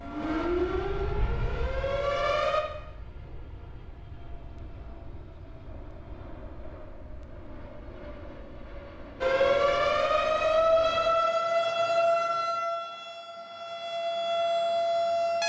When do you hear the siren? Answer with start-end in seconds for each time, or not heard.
0.0-2.6, 9.2-15.4.